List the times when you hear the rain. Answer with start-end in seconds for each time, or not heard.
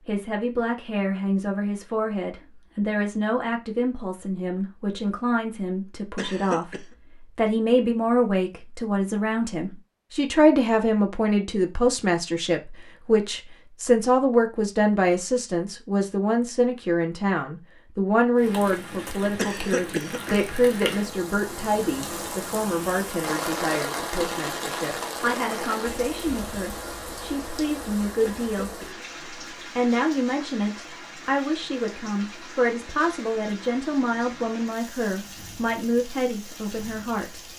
18.4-37.5.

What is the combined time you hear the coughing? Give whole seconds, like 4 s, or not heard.
3 s.